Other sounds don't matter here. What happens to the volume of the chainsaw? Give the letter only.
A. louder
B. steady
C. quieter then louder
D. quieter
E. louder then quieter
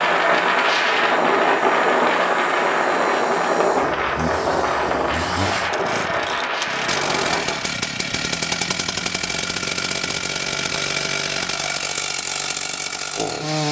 A.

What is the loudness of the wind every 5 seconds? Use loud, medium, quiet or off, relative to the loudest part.
loud, medium, off.